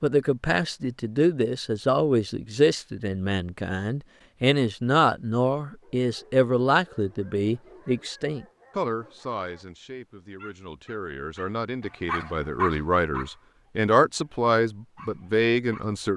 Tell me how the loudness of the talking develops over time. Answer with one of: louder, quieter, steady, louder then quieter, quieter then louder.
quieter then louder.